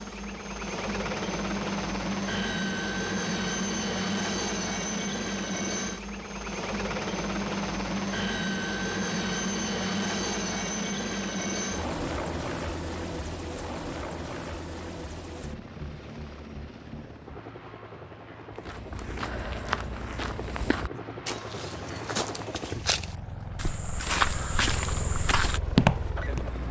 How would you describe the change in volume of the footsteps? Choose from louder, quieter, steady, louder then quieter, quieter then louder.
louder.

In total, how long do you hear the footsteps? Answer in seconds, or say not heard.
8 s.